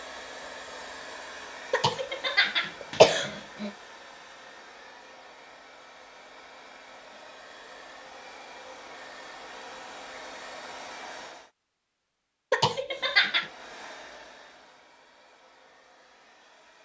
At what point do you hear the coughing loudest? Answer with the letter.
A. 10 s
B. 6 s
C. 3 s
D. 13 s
C.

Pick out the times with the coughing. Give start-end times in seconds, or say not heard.
1.7-3.7, 12.5-13.5.